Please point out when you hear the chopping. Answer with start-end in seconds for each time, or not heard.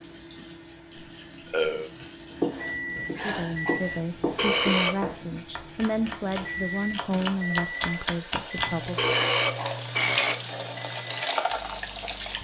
2.3-8.8.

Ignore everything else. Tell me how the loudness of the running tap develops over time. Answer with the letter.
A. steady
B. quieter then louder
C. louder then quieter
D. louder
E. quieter
D.